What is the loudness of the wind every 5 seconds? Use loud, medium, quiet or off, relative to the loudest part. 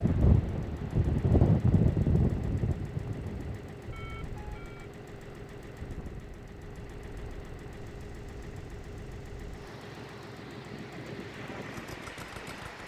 loud, quiet, quiet.